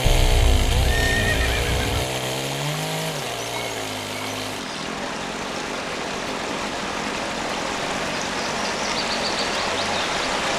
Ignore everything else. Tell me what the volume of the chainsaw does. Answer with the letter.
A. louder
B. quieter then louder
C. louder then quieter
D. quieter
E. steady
D.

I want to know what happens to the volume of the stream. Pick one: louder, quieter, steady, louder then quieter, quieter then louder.
louder.